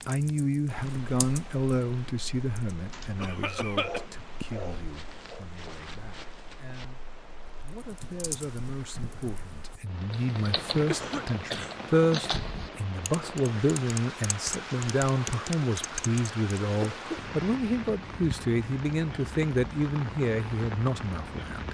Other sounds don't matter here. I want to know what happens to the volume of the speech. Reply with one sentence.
The loudness of the speech goes down, then up.